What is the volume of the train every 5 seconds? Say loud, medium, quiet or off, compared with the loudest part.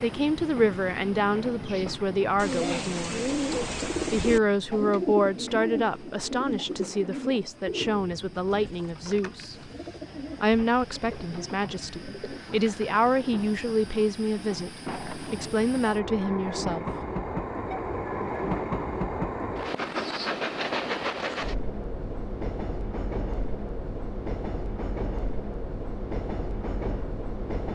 medium, quiet, medium, loud, loud, loud.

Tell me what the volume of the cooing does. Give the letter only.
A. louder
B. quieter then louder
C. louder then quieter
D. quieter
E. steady
D.